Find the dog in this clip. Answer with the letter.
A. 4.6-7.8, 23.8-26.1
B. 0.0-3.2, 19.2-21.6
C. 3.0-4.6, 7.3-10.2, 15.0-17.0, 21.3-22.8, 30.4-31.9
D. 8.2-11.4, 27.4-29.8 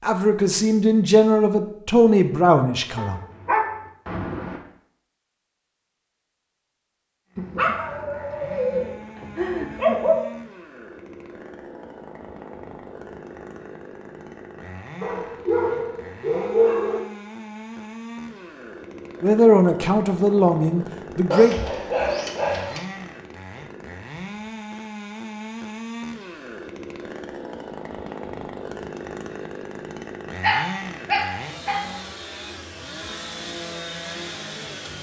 C.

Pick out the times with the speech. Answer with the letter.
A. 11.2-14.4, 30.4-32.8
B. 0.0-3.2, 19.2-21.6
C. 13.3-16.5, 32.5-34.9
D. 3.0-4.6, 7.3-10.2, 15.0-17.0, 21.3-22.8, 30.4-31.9
B.